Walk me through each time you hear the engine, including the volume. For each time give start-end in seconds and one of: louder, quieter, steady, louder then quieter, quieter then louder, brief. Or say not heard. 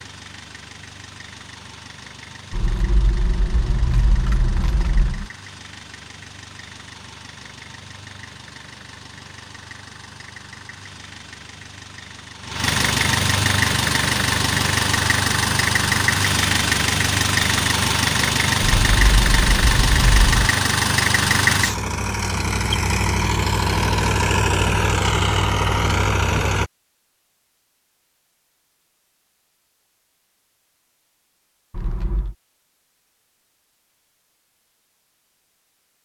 0.0-26.7 louder.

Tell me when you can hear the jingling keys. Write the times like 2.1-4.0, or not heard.
2.5-5.3, 18.6-20.5, 31.7-32.4.